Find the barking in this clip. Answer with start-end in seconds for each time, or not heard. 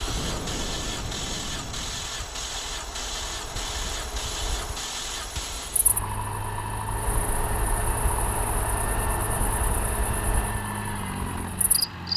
not heard.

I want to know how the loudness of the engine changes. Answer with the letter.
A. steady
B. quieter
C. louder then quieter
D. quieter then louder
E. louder
A.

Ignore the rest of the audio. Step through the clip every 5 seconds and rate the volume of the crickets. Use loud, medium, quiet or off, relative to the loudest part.
medium, loud, loud.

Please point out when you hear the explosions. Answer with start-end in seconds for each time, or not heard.
0.1-2.1.